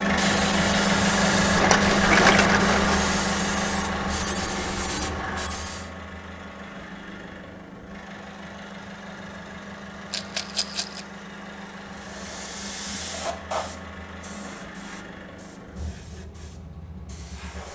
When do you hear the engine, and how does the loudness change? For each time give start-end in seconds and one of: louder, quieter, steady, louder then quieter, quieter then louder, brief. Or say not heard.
0.0-17.7 quieter.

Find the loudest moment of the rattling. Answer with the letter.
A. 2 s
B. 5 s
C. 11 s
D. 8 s
A.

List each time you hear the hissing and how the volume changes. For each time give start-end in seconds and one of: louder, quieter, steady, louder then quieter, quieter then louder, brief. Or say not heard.
0.0-5.9 steady
11.9-17.7 quieter.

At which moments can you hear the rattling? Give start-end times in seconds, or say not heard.
1.5-3.0, 10.1-11.0.